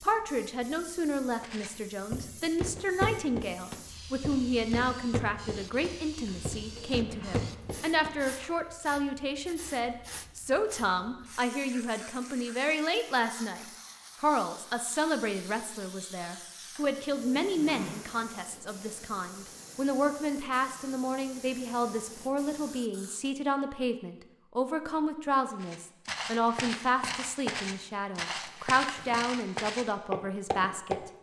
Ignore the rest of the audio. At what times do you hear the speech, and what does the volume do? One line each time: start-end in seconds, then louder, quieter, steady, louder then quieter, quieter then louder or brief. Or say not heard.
0.0-13.6 steady
14.2-31.0 steady.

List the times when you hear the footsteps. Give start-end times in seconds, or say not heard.
1.4-8.5, 25.6-31.0.